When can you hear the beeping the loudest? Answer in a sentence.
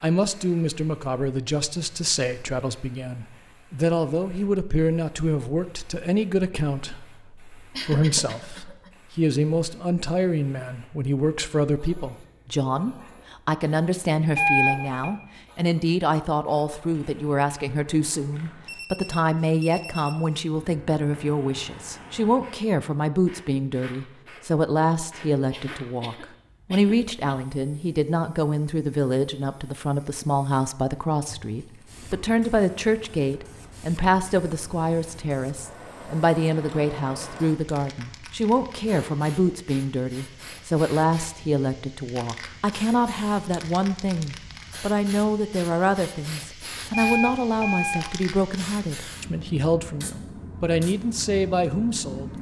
The loudest moment of the beeping is at 15 seconds.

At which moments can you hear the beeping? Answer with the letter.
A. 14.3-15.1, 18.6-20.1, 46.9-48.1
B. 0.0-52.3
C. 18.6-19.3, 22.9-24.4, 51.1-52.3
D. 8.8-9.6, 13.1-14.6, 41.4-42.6
A.